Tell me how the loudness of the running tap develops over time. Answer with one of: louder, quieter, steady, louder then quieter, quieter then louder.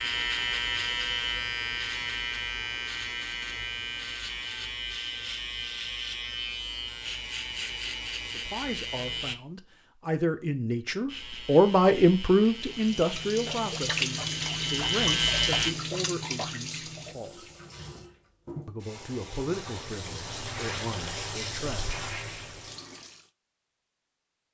quieter then louder.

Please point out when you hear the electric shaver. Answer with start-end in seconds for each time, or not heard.
0.0-9.3, 11.1-15.8.